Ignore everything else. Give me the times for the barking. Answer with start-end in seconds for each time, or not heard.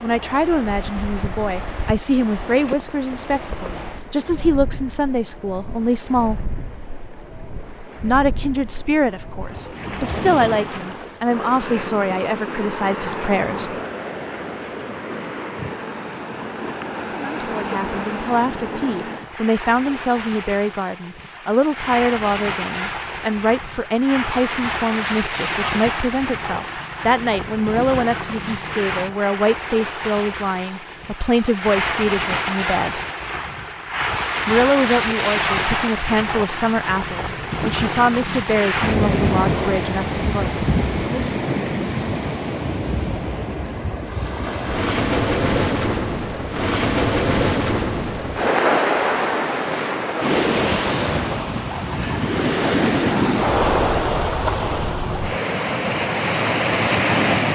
not heard.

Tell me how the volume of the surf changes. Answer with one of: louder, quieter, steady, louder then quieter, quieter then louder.
louder.